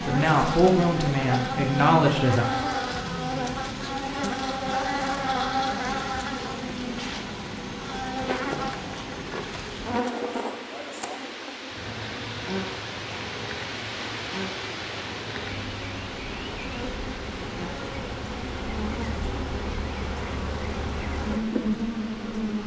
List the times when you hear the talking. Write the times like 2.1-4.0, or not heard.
0.0-2.5.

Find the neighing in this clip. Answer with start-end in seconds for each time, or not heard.
not heard.